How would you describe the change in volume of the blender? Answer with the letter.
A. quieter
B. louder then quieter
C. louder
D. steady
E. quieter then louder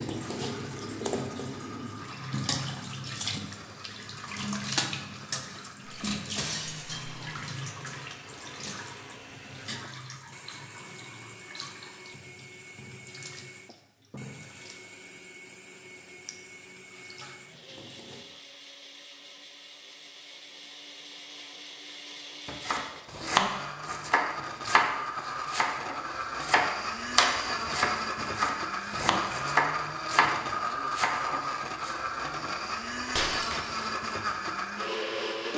C.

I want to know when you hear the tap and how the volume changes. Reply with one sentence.
The tap can be heard from 0.0 to 18.2 s, getting quieter.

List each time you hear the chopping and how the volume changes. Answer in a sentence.
You can hear the chopping from 22.4 to 31.9 s, at a steady volume.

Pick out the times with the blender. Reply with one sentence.
The blender can be heard from 0.0 to 35.5 s.